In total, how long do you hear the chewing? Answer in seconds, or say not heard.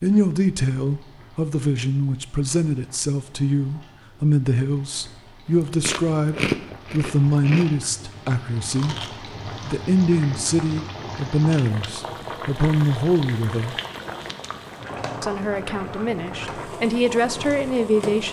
4 s.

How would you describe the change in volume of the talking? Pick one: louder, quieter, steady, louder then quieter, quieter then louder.
steady.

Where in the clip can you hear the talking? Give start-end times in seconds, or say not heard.
0.0-8.9, 9.6-13.8, 15.2-18.2.